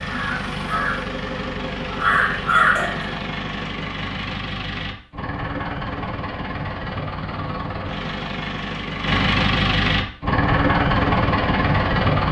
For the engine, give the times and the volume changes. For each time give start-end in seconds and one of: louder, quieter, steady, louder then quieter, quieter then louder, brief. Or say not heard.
0.0-12.2 louder.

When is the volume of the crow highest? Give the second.
3 s.